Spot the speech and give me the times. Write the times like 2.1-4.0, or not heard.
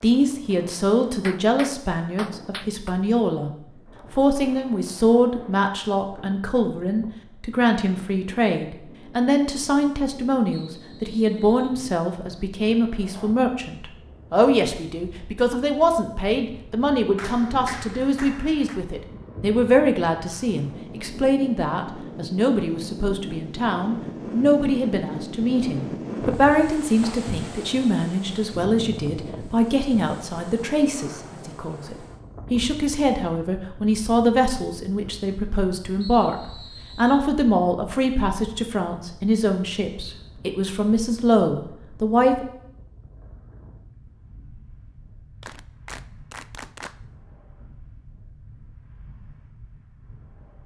0.0-3.5, 4.1-36.4, 37.0-42.5.